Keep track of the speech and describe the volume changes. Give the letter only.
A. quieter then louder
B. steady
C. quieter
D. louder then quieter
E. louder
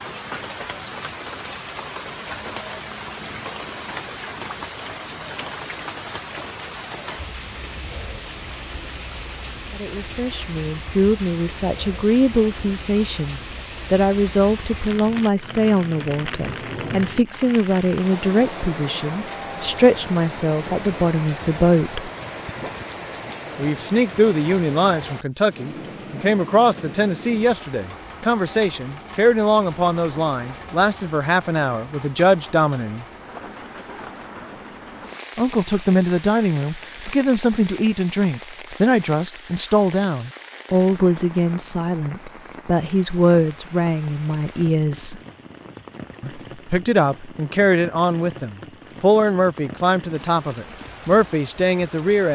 B.